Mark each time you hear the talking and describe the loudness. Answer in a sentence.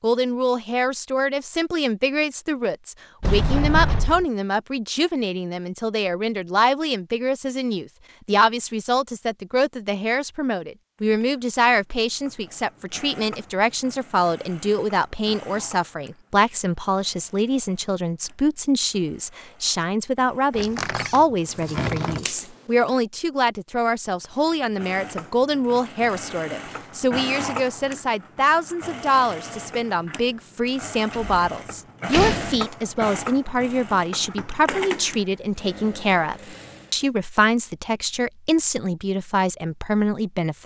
You can hear the talking from 0.0 to 40.6 s, at a steady volume.